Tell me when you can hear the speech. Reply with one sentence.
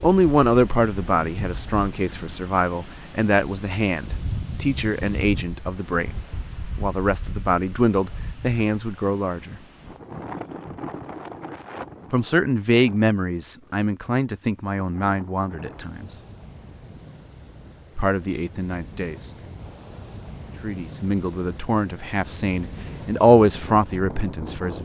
The speech can be heard from 0.0 to 6.2 s, from 6.8 to 9.6 s, from 12.1 to 16.1 s, from 17.9 to 19.3 s and from 20.6 to 24.8 s.